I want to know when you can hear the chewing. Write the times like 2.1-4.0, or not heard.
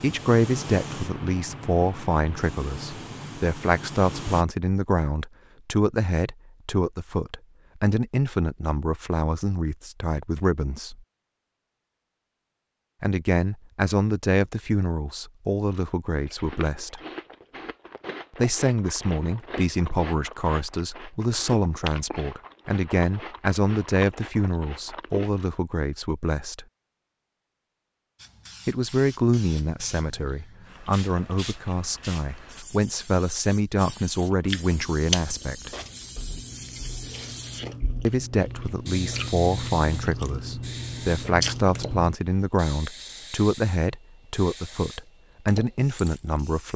16.2-25.4, 34.3-42.1.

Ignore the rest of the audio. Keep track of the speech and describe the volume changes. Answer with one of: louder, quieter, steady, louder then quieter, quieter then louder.
steady.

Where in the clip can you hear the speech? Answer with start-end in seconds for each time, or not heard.
0.0-11.0, 13.0-17.0, 18.4-26.6, 28.6-35.7, 38.0-46.7.